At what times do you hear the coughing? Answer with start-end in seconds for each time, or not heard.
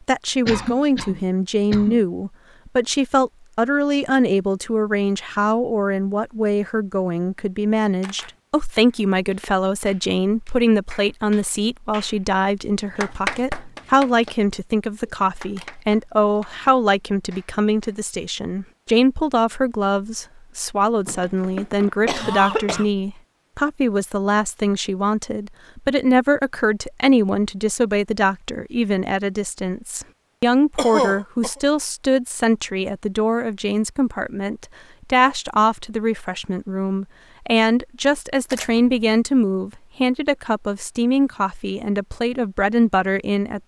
0.5-2.0, 21.1-22.9, 30.8-31.6.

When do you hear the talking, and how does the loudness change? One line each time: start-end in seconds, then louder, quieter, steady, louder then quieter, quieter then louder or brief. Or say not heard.
0.1-43.6 steady.